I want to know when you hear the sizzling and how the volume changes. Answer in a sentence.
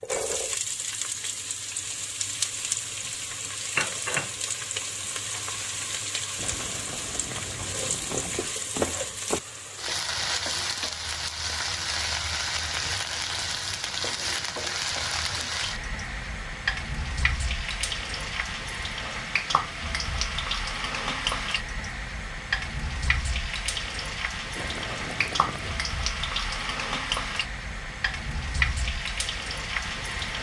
The sizzling can be heard from 0.0 to 30.3 s, at a steady volume.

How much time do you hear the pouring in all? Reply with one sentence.
You can hear the pouring for 5 seconds altogether.